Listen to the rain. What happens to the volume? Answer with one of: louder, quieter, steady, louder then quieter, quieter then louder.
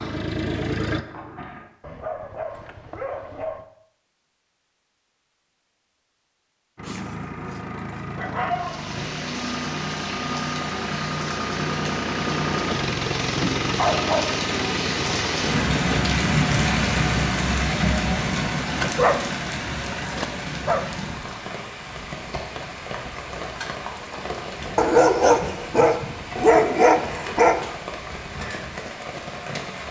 louder then quieter.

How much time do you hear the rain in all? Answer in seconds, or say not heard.
21 s.